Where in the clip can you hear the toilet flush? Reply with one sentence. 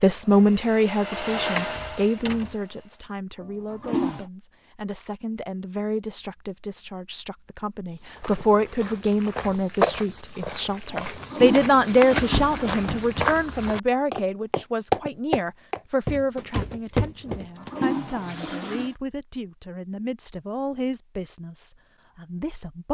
You can hear the toilet flush from 3.4 to 4.2 s, from 10.9 to 13.1 s and from 17.4 to 18.9 s.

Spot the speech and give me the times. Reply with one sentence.
You can hear the speech from 0.0 to 22.8 s.